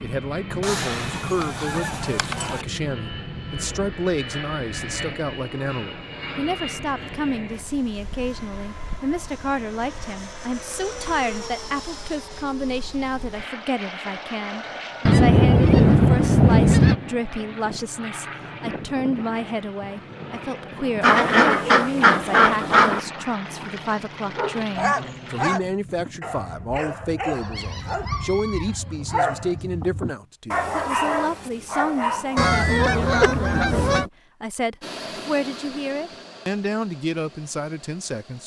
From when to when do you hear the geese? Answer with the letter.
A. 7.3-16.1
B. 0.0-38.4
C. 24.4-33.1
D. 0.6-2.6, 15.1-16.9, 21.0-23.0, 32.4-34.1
D.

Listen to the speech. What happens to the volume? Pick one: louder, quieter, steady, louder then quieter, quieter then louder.
steady.